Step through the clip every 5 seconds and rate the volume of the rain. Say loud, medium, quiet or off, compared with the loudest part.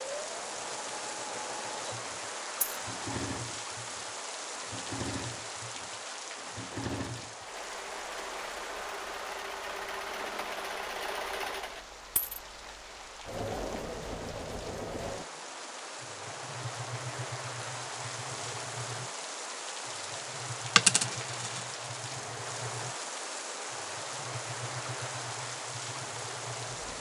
loud, loud, medium, loud, loud, loud.